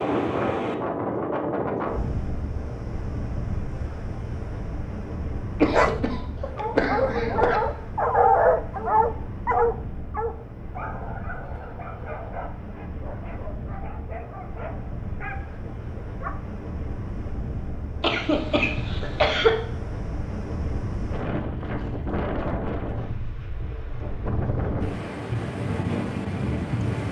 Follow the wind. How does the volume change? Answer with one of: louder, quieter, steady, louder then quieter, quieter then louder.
quieter then louder.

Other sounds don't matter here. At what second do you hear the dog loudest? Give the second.
8 s.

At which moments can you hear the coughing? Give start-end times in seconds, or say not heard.
5.5-7.6, 18.0-19.5.